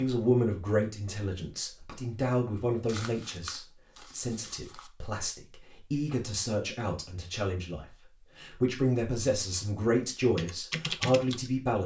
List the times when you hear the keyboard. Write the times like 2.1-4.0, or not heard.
10.3-11.8.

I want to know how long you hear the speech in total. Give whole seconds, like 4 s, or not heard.
12 s.